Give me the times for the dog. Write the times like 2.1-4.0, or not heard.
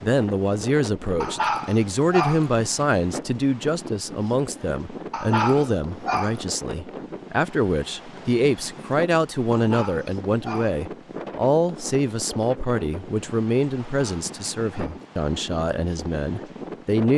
1.2-2.5, 5.1-6.5, 9.5-10.8, 13.9-15.1.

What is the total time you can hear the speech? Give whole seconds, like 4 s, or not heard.
17 s.